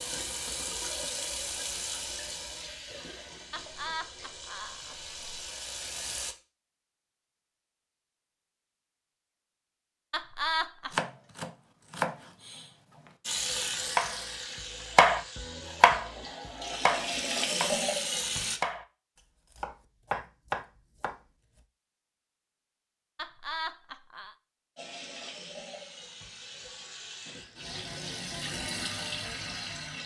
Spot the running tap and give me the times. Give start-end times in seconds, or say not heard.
0.0-6.3, 13.2-18.6, 24.8-30.0.